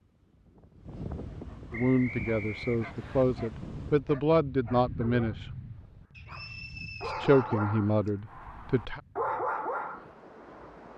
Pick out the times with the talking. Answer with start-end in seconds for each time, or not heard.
1.7-5.5, 7.0-9.0.